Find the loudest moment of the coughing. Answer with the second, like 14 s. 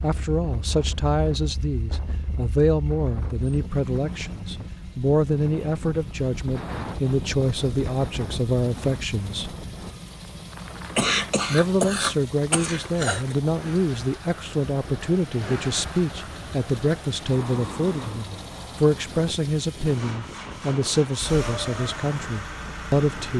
11 s.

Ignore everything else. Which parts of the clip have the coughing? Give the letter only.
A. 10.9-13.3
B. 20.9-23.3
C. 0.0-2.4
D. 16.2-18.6
A.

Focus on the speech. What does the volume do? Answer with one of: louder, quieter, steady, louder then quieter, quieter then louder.
steady.